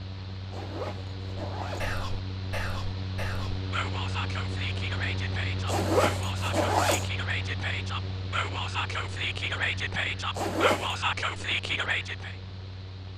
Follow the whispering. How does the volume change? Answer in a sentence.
The loudness of the whispering goes up.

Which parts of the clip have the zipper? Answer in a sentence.
You can hear the zipper from 0.5 to 1.9 s, from 5.7 to 7.1 s and from 10.3 to 10.9 s.